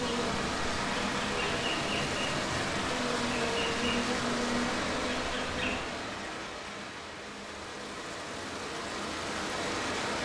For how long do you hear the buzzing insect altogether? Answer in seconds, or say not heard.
6 s.